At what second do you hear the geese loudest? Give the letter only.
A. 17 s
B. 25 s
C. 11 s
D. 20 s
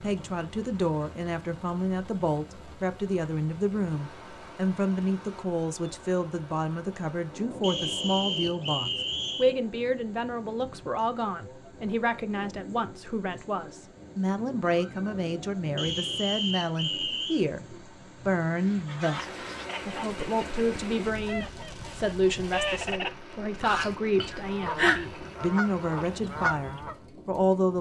B.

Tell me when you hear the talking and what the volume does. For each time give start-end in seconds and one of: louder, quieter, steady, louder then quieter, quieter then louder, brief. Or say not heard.
0.0-27.7 steady.